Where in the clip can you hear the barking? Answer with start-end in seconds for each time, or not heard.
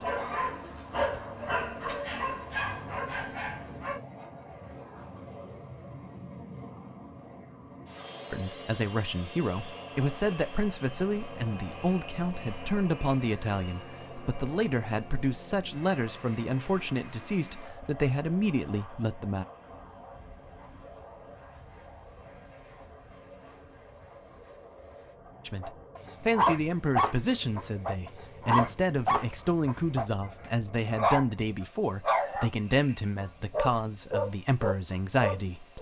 0.0-4.0, 25.6-32.5, 33.2-35.7.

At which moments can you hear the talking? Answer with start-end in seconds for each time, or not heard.
8.3-19.4, 25.4-35.7.